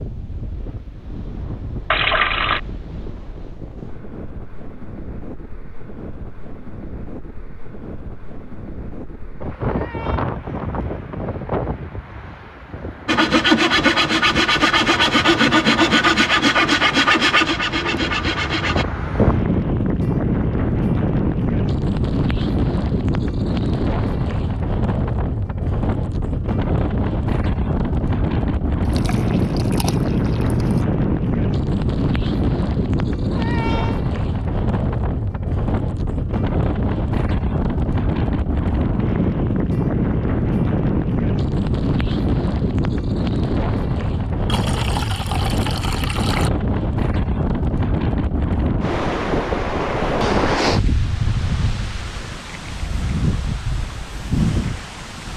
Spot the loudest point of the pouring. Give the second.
2 s.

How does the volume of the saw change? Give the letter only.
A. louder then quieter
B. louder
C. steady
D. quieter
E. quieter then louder
D.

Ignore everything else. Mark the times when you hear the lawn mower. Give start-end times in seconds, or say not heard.
not heard.